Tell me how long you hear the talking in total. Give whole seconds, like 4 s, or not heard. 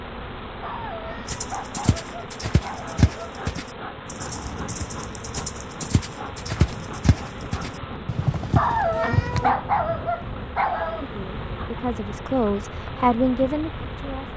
3 s.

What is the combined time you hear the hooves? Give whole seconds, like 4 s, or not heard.
8 s.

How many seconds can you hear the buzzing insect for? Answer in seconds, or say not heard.
14 s.